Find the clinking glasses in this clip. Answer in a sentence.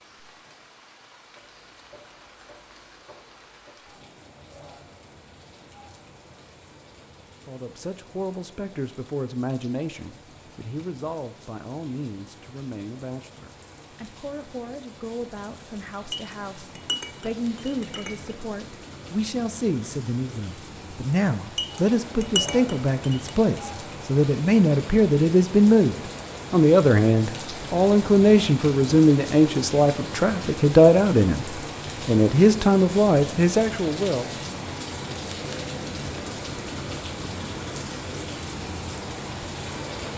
You can hear the clinking glasses from 16.1 to 18.4 s and from 21.6 to 23.4 s.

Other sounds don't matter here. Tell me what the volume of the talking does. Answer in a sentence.
The loudness of the talking goes up.